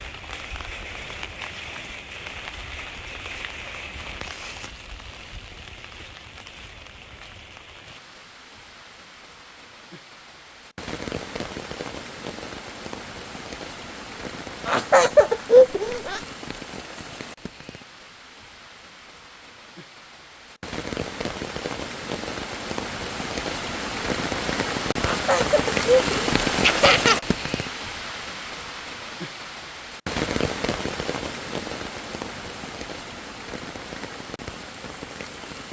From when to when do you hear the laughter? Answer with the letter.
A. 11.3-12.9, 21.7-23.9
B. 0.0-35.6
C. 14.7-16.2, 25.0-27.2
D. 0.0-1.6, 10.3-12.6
C.